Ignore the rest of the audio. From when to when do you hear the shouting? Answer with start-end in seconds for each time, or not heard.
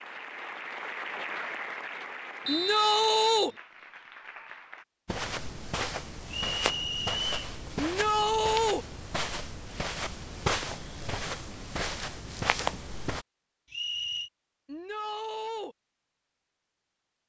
2.5-3.5, 7.8-8.8, 14.7-15.8.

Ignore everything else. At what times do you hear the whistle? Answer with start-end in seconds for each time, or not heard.
2.5-3.5, 6.3-7.3, 13.7-14.3.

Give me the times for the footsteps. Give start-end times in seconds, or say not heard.
5.0-13.2.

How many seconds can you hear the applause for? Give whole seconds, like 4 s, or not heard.
5 s.